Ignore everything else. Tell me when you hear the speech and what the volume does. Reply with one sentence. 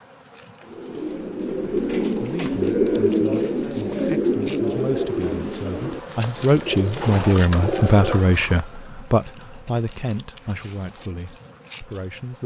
You can hear the speech from 2.2 to 12.4 s, getting louder then quieter.